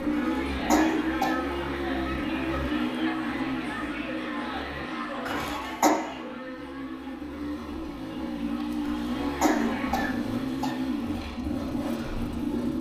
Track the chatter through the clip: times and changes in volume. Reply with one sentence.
The chatter can be heard from 0.0 to 10.2 s, getting quieter.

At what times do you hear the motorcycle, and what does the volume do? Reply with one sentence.
You can hear the motorcycle from 0.0 to 12.7 s, getting quieter then louder.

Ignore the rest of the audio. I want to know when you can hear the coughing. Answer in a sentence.
You can hear the coughing from 0.1 to 1.4 s, from 5.2 to 6.0 s and from 8.8 to 10.8 s.